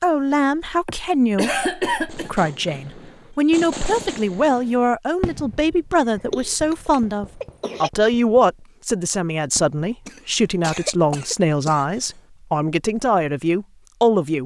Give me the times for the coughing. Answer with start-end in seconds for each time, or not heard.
0.8-2.3, 6.3-7.9, 10.1-12.1.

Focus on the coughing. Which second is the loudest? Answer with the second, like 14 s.
2 s.